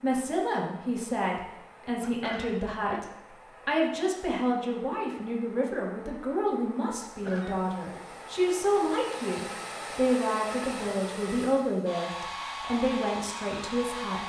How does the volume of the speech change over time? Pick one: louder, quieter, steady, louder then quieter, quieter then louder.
steady.